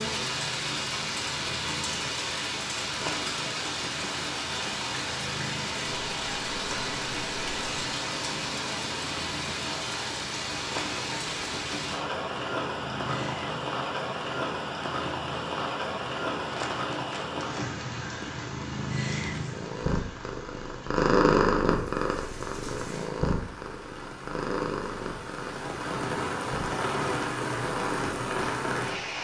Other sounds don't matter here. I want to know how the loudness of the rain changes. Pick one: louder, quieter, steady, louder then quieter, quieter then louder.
quieter then louder.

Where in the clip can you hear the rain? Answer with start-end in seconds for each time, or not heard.
0.0-29.1.